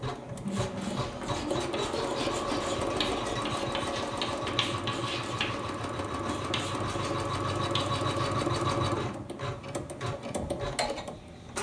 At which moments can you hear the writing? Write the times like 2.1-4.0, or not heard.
0.5-8.3.